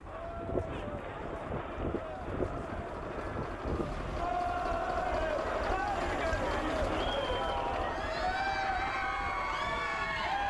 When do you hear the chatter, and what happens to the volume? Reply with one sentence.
The chatter can be heard from 0.0 to 10.4 s, getting louder.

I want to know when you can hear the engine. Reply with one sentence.
You can hear the engine from 0.0 to 10.4 s.